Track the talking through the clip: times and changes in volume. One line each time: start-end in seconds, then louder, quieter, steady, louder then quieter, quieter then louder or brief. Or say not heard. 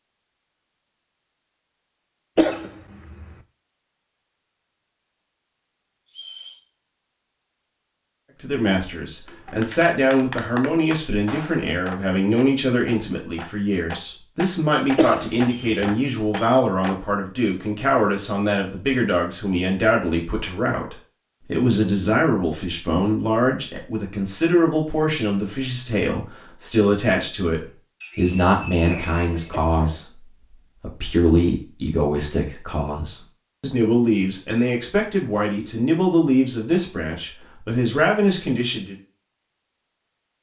8.4-39.0 steady.